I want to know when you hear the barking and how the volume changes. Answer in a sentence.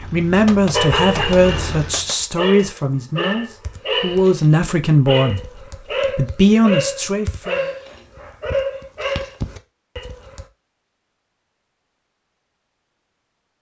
The barking can be heard from 0.7 to 10.4 s, at a steady volume.